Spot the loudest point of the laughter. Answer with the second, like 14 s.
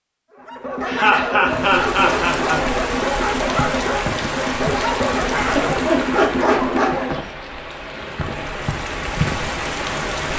1 s.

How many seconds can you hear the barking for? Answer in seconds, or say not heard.
7 s.